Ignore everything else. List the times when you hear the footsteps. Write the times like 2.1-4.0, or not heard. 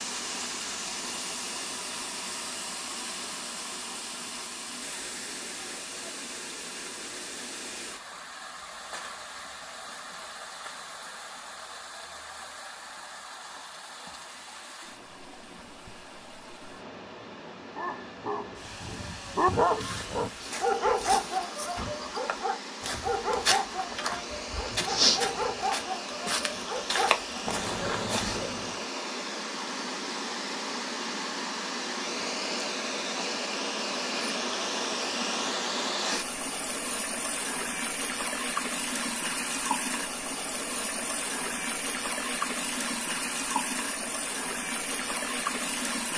19.7-28.4.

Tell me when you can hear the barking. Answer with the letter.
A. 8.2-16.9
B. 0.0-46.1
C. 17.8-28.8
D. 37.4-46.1
C.